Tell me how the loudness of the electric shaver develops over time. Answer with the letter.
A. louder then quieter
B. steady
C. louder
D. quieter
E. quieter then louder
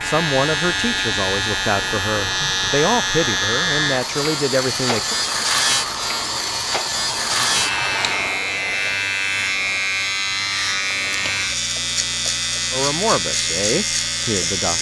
B.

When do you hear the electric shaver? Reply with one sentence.
You can hear the electric shaver from 0.0 to 14.7 s.